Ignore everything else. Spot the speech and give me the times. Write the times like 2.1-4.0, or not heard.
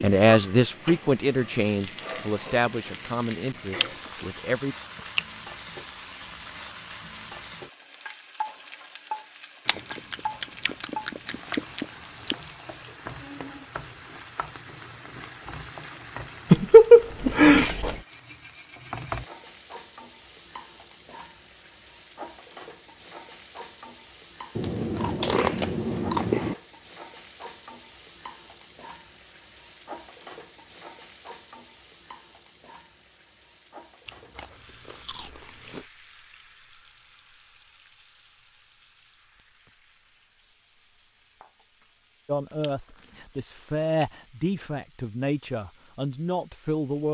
0.0-4.8, 42.2-47.0.